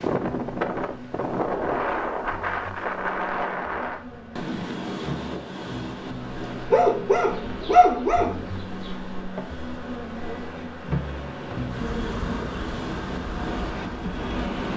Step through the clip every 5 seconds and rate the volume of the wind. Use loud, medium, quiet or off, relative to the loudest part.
loud, medium, medium.